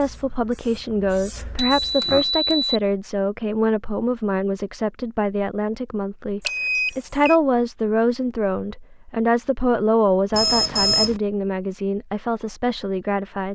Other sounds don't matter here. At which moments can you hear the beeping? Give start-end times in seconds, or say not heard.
1.6-2.8, 6.4-7.3, 10.3-11.2.